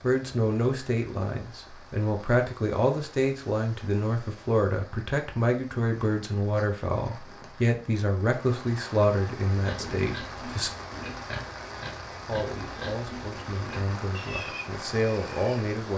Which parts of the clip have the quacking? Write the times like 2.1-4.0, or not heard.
not heard.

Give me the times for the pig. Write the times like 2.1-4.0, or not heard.
9.6-15.6.